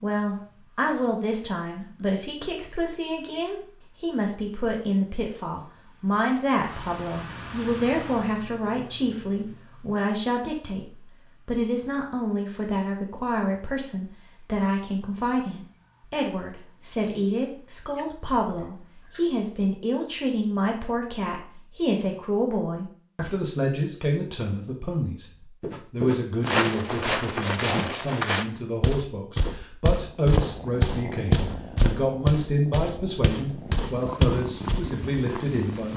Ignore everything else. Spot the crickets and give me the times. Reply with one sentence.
You can hear the crickets from 0.0 to 19.4 s.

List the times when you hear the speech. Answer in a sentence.
You can hear the speech from 0.0 to 25.2 s and from 25.9 to 35.9 s.